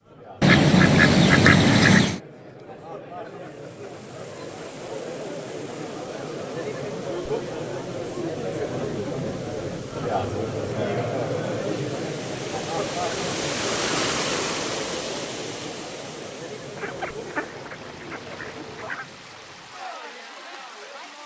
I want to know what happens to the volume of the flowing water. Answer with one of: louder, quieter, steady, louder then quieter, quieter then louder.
louder then quieter.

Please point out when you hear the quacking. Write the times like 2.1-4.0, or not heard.
0.4-2.2, 16.8-19.1.